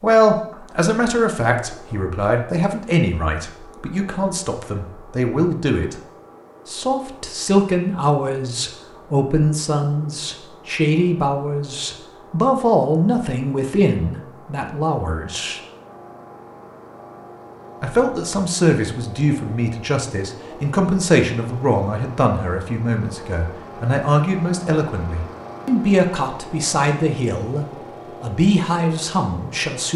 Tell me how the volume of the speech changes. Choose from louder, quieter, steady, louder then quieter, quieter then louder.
steady.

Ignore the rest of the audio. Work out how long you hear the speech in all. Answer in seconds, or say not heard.
27 s.